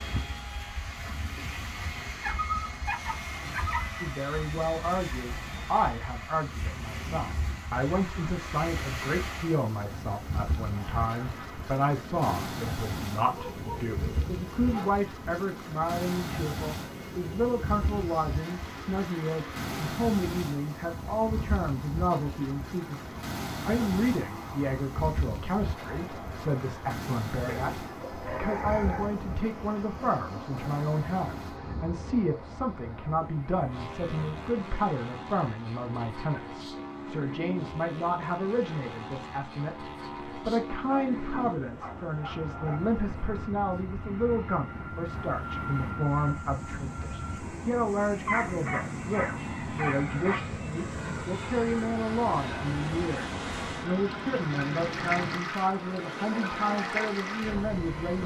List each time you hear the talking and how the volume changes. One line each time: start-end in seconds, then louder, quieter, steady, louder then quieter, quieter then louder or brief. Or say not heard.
4.0-58.2 steady.